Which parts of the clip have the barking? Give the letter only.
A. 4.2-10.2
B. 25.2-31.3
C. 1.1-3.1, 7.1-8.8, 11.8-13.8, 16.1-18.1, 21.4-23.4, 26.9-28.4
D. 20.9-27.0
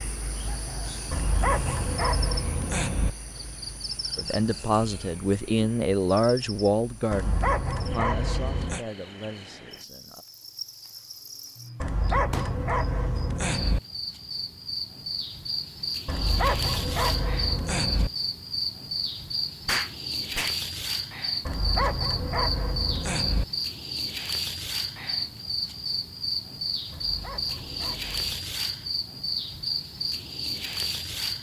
C.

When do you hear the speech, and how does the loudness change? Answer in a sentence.
You can hear the speech from 4.2 to 10.2 s, getting quieter.